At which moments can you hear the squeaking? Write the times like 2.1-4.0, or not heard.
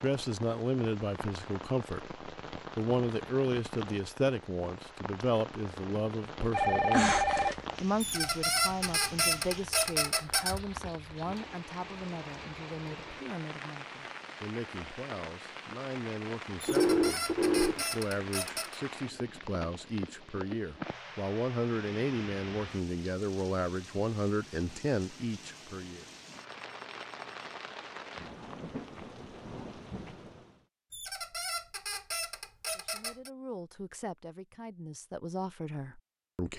8.0-10.6, 16.6-18.8, 30.9-33.3.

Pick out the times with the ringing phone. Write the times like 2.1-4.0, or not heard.
6.5-7.8, 16.6-17.9, 26.4-27.4.